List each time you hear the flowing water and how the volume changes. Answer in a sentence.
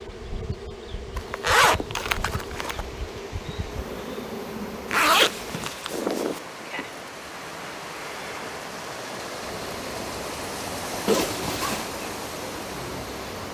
You can hear the flowing water from 2.6 to 13.5 s, getting louder.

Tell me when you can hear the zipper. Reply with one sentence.
The zipper can be heard from 1.1 to 2.9 s, from 4.9 to 6.4 s and from 11.1 to 11.9 s.